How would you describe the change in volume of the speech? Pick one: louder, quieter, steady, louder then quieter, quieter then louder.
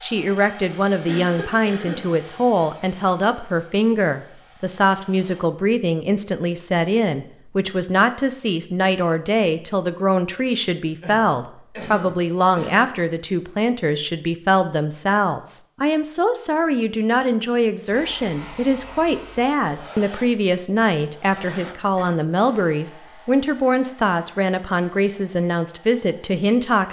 steady.